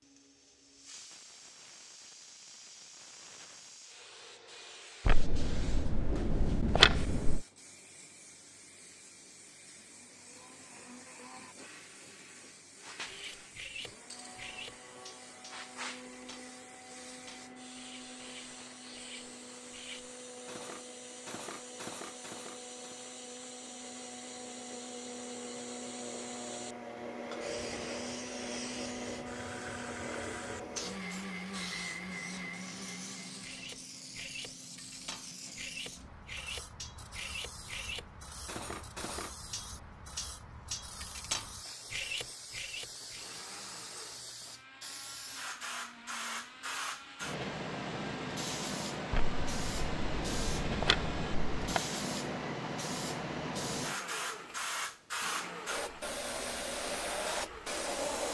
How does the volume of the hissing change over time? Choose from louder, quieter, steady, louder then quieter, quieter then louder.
louder.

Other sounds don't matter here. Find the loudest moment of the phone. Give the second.
7 s.